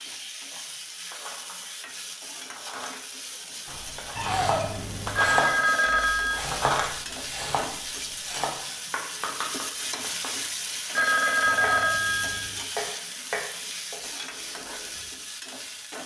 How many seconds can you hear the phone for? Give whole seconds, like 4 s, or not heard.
3 s.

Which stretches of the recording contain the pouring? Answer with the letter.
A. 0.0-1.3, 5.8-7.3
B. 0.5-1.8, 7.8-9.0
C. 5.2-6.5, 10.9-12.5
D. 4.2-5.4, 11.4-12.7
D.